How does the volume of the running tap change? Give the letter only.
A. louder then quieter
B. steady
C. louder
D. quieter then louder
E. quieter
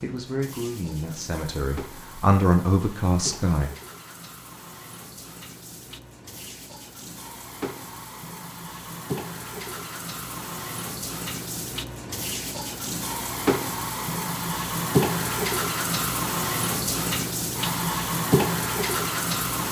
C.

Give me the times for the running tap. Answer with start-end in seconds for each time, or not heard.
0.0-19.6.